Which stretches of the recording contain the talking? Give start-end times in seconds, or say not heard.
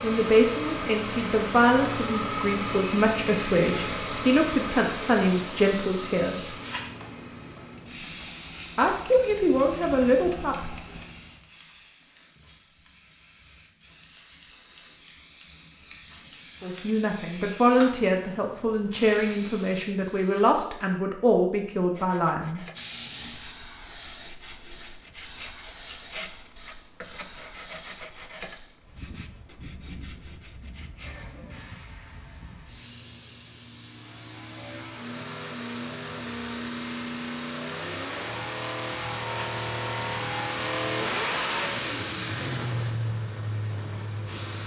0.0-6.5, 8.8-10.8, 16.6-22.7.